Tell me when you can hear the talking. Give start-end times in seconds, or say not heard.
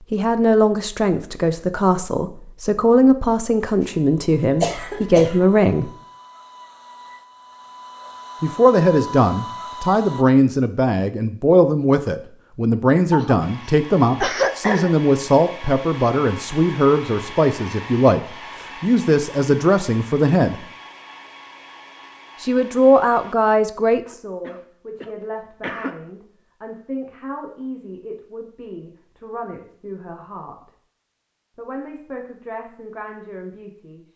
0.1-5.9, 8.4-20.6, 22.4-30.7, 31.6-34.1.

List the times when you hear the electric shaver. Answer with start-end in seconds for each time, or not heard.
not heard.